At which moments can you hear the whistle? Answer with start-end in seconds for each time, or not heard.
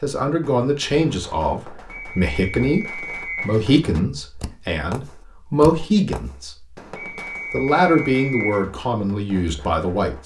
1.9-3.5, 7.0-8.7.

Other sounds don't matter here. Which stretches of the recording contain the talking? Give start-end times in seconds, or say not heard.
0.0-6.8, 7.5-10.2.